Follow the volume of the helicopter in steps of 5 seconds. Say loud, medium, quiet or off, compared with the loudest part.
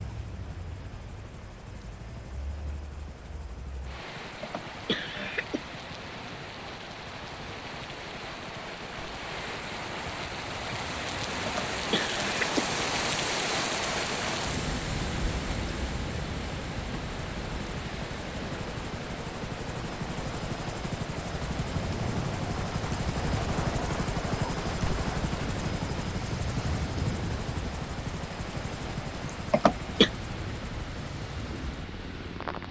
quiet, quiet, quiet, medium, loud, loud, medium.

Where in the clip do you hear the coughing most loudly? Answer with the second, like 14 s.
30 s.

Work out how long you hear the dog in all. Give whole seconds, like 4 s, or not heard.
not heard.